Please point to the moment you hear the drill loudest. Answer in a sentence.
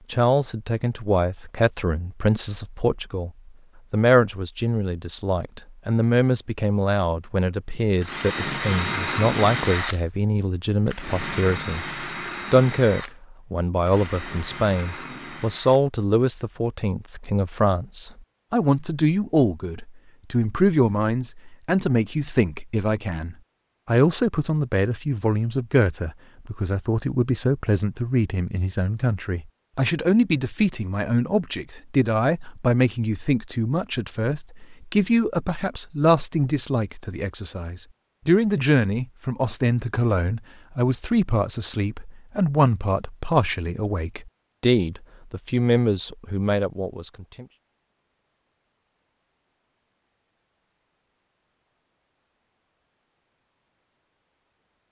The volume of the drill peaks at 9 seconds.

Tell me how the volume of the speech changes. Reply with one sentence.
The volume of the speech stays about the same.